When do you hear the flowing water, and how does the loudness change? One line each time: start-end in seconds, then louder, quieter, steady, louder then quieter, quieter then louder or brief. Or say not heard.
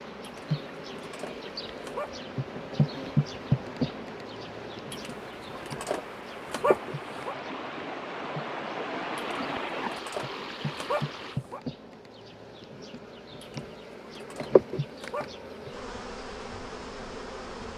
0.0-11.4 louder.